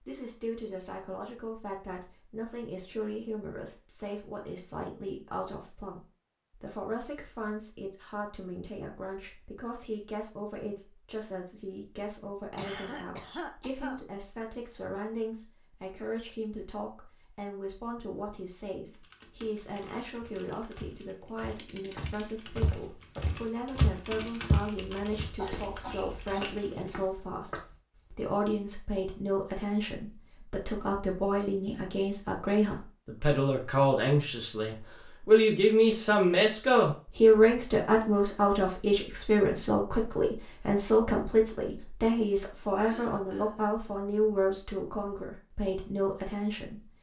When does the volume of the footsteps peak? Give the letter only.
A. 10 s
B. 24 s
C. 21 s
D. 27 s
B.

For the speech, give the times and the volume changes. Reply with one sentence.
You can hear the speech from 0.1 to 46.8 s, getting louder.